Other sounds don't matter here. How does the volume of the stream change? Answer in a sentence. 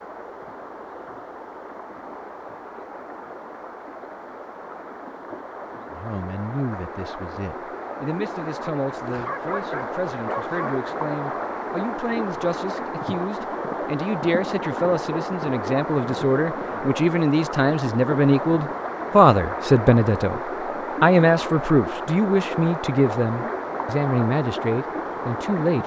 The loudness of the stream goes up.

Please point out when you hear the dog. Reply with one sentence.
You can hear the dog from 9.1 to 10.8 s.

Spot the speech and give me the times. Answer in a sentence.
You can hear the speech from 5.9 to 20.4 s and from 21.0 to 25.8 s.